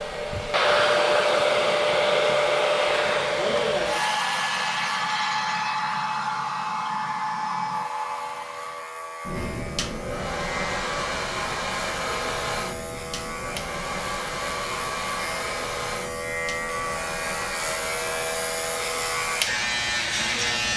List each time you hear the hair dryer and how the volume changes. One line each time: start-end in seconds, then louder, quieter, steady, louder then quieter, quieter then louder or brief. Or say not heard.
0.0-20.7 quieter.